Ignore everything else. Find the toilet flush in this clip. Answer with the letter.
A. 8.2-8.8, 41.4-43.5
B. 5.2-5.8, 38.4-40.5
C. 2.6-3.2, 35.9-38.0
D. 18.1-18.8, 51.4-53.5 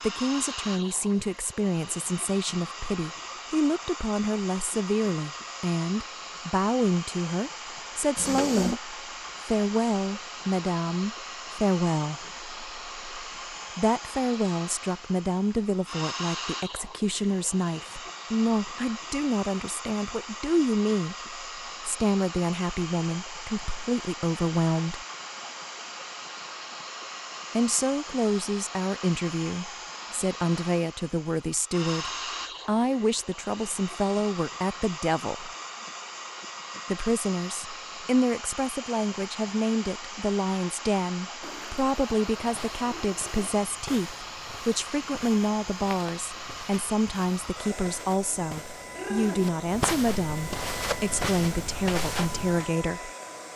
A.